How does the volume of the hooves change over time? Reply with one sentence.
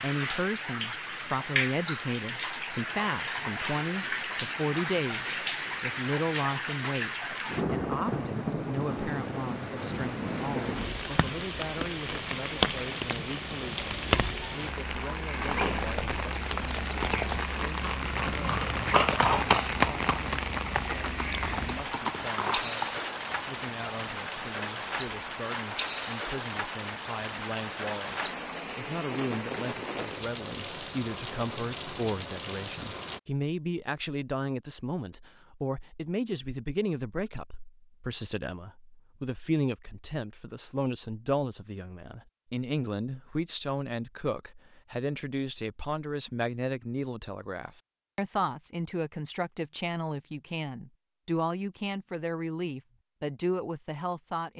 The volume of the hooves goes up, then down.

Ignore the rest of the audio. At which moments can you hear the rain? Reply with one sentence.
The rain can be heard from 0.0 to 33.2 s.